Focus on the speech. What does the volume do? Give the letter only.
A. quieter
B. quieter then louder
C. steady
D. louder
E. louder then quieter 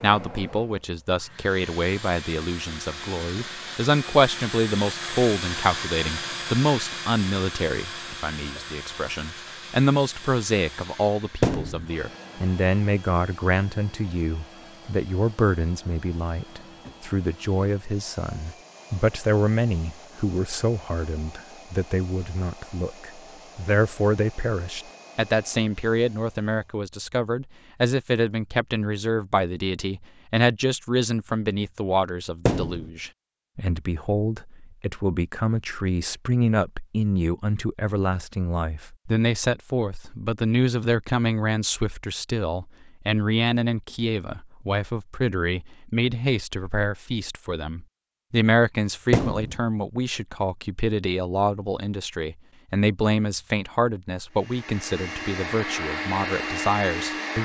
C.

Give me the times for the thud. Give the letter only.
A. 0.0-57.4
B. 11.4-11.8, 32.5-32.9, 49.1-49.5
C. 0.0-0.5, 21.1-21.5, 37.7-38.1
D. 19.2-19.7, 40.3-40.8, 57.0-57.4
B.